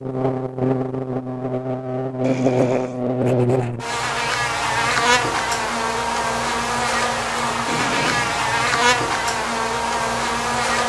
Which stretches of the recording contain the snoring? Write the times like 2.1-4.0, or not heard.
2.2-3.0, 7.7-8.4.